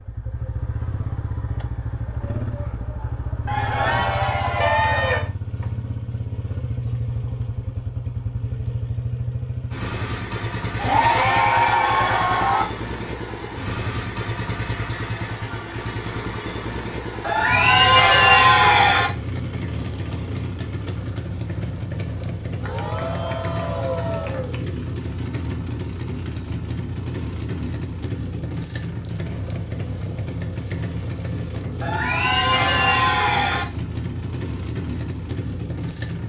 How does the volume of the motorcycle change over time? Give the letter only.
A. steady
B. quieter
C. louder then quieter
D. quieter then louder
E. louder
A.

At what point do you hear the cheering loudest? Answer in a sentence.
The loudest moment of the cheering is at 18 seconds.